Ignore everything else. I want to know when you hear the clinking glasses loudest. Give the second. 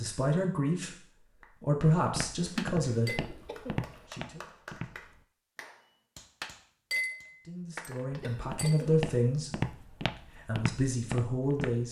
7 s.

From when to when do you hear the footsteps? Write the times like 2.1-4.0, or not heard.
2.0-5.2, 8.3-11.8.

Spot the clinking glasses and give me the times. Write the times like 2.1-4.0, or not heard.
2.5-3.2, 6.4-8.8.